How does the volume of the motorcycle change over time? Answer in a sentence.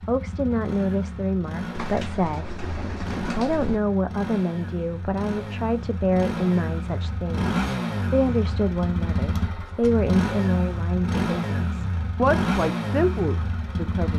The volume of the motorcycle goes up.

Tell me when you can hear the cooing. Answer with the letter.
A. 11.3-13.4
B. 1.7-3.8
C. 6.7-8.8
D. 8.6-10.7
B.